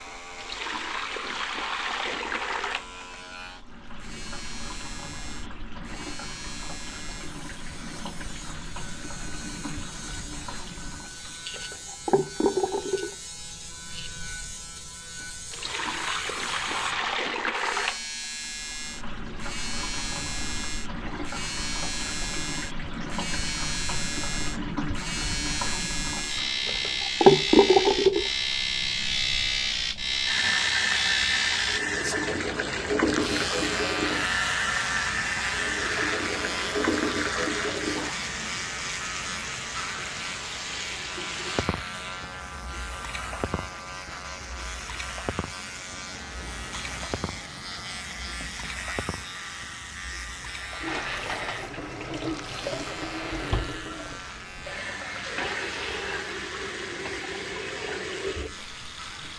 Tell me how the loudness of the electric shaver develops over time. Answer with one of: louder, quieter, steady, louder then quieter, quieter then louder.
louder then quieter.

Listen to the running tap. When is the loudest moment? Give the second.
28 s.